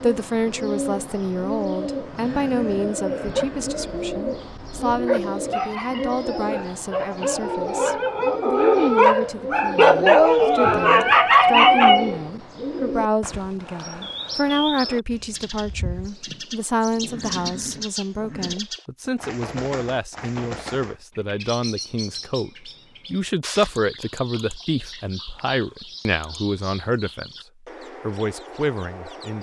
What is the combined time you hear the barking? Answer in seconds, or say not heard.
9 s.